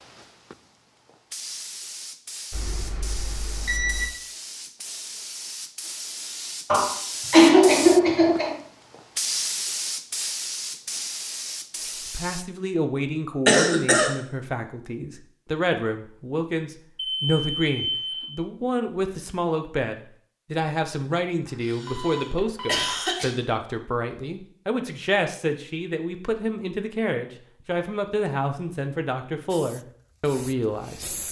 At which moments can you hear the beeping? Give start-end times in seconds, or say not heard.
2.5-4.1, 16.9-18.2, 21.9-22.9.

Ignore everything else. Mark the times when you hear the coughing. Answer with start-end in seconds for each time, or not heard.
6.7-8.6, 13.4-14.1, 21.6-23.3.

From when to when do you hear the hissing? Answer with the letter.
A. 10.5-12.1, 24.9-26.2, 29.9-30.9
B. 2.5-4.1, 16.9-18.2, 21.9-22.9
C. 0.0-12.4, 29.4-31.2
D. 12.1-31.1
C.